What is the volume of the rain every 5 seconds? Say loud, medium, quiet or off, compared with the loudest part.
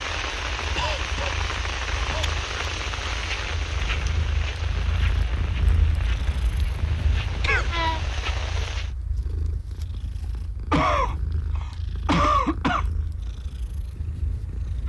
loud, medium, off.